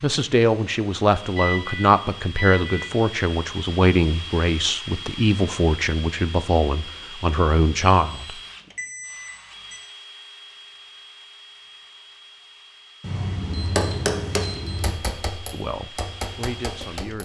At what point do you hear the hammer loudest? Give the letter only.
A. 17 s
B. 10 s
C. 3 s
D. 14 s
D.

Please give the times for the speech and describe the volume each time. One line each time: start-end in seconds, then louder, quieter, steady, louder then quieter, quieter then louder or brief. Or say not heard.
0.0-8.4 steady
15.5-17.2 brief.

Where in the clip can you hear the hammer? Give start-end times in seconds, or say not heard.
13.7-17.2.